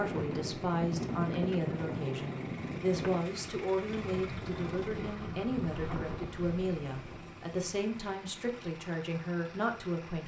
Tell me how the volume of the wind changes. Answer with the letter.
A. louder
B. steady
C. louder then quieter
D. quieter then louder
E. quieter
E.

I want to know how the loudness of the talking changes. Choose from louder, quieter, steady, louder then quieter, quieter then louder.
steady.